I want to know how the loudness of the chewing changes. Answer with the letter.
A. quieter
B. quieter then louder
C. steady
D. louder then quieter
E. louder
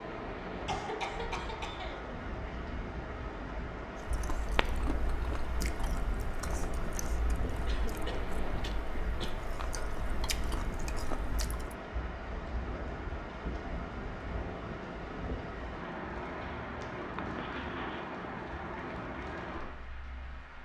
B.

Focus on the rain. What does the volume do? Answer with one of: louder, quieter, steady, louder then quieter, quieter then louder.
steady.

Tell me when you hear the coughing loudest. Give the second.
1 s.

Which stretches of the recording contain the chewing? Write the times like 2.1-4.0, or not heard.
4.0-11.8.